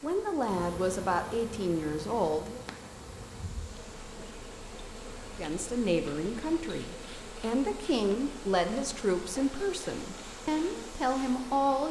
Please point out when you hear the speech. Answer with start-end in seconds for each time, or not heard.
0.0-2.6, 5.3-11.8.